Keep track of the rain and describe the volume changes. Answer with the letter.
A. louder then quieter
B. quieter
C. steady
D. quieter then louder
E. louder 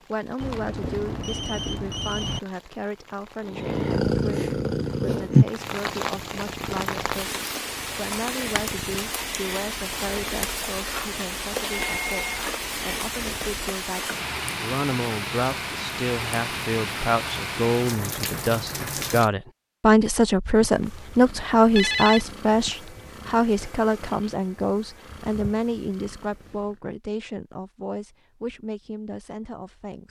E.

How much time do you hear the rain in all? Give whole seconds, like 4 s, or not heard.
19 s.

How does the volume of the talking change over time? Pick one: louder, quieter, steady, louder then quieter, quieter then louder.
louder then quieter.